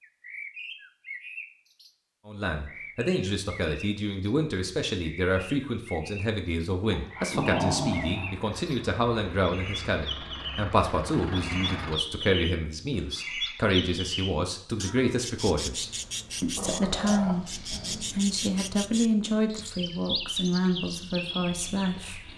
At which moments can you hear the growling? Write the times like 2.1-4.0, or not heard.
6.9-8.4, 16.6-18.1.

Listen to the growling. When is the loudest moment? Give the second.
8 s.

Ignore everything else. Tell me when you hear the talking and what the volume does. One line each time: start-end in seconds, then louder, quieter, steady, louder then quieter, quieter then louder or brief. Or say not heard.
2.2-22.3 steady.